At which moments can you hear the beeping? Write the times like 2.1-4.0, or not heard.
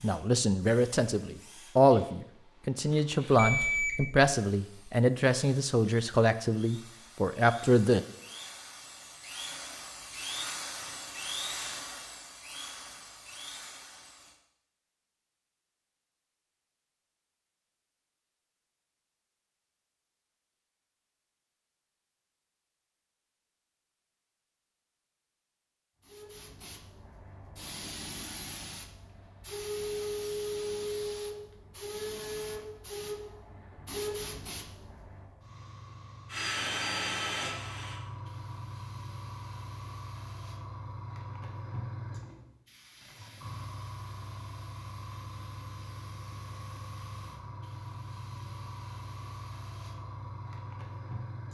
3.4-4.3.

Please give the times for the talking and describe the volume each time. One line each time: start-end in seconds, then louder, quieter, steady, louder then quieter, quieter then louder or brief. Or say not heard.
0.0-8.1 steady.